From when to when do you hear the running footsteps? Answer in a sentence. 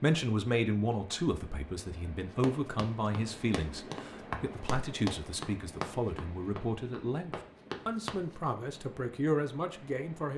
The running footsteps can be heard from 2.4 to 8.3 s.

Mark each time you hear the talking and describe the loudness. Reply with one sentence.
You can hear the talking from 0.0 to 10.3 s, at a steady volume.